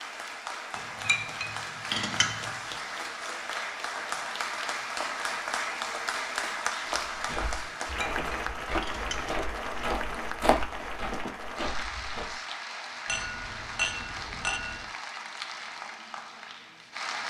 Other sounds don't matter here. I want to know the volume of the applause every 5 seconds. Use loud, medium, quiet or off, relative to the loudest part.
loud, loud, medium, medium.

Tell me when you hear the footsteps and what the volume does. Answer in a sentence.
The footsteps can be heard from 7.1 to 12.4 s, getting louder then quieter.